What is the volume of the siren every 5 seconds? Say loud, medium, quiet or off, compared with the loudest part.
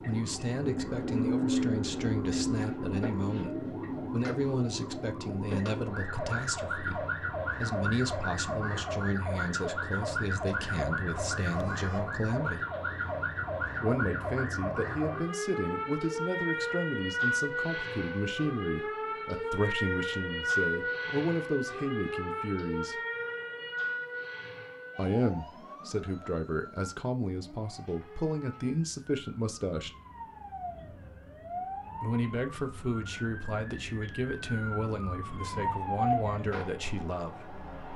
loud, loud, loud, loud, loud, quiet, medium, loud.